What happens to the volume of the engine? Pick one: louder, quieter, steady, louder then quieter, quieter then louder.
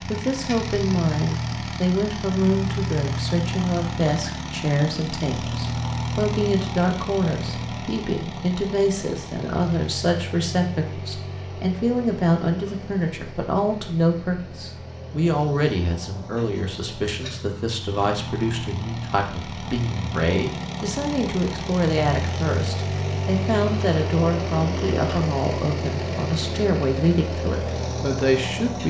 quieter then louder.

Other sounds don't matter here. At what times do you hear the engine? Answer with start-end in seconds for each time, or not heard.
0.0-28.8.